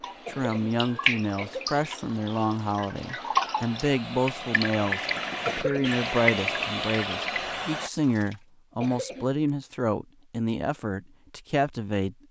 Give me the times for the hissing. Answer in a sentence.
You can hear the hissing from 0.0 to 7.9 s.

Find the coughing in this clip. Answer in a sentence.
You can hear the coughing from 0.2 to 1.8 s, from 5.5 to 6.0 s and from 8.8 to 9.3 s.